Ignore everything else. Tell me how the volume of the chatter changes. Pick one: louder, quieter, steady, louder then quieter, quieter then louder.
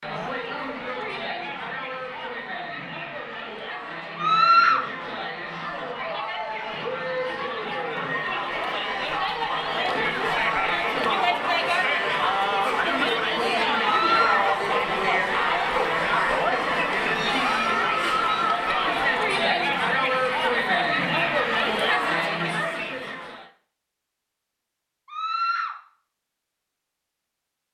louder.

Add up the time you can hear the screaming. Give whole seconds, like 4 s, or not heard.
2 s.